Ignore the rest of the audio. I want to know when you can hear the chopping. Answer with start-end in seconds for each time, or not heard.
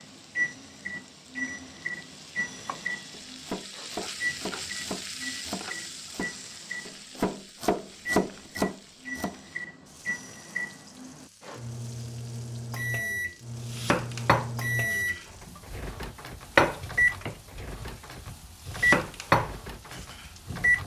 2.5-9.4, 13.7-15.6, 16.6-20.7.